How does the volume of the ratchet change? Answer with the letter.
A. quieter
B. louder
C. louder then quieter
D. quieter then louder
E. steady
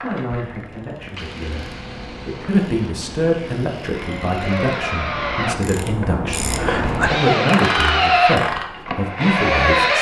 B.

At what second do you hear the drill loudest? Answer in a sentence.
The volume of the drill peaks at 8 seconds.